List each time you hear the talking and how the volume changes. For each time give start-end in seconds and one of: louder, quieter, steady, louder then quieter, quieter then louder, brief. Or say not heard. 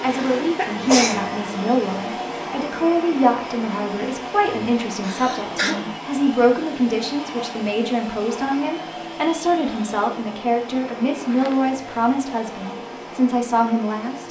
0.0-14.2 steady.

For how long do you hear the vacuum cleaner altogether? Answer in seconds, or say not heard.
14 s.